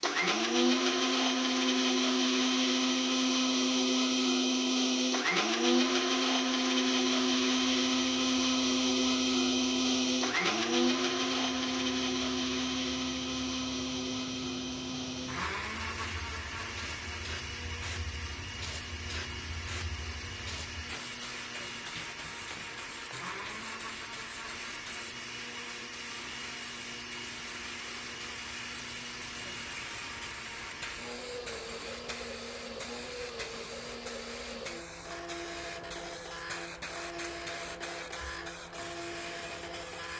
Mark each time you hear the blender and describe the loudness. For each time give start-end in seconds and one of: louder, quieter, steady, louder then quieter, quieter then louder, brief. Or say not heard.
0.0-40.1 quieter.